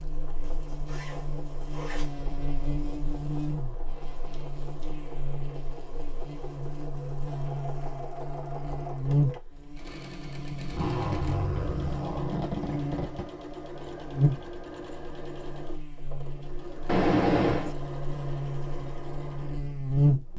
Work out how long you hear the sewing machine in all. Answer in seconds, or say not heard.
20 s.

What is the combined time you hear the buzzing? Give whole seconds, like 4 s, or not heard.
20 s.